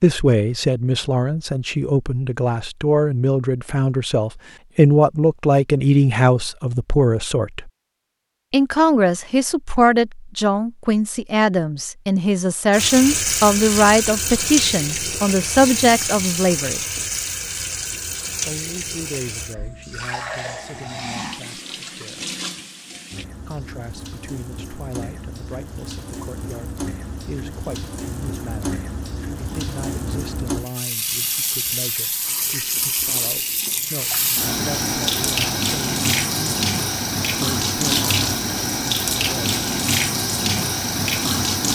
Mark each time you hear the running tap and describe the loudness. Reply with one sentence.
You can hear the running tap from 12.7 to 41.7 s, getting quieter then louder.